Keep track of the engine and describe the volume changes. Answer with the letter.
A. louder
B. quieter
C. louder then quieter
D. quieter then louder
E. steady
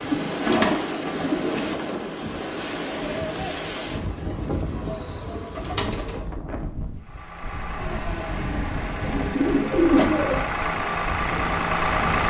A.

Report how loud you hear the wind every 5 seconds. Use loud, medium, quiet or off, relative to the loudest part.
loud, medium, medium.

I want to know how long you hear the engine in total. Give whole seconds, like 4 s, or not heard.
5 s.